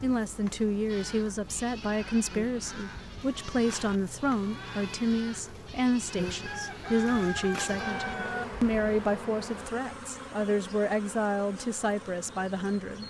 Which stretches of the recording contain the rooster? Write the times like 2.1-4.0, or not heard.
6.5-8.4.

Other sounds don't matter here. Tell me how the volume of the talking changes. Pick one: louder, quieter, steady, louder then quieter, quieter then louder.
steady.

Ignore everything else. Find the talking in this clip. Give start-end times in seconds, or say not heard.
0.0-13.0.